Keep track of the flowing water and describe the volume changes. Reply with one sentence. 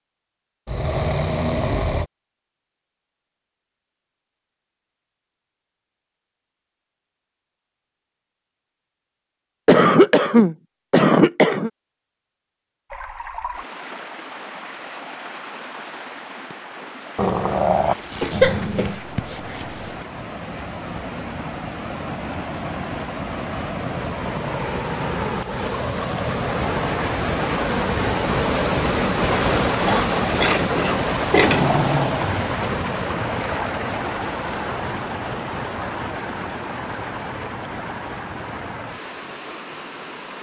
The loudness of the flowing water goes up, then down.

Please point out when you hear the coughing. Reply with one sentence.
The coughing can be heard from 9.7 to 11.7 s, from 18.2 to 19.6 s and from 29.9 to 31.6 s.